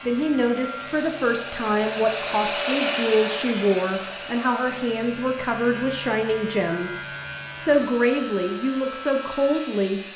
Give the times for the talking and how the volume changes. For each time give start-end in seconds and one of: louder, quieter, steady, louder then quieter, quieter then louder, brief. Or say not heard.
0.0-10.0 steady.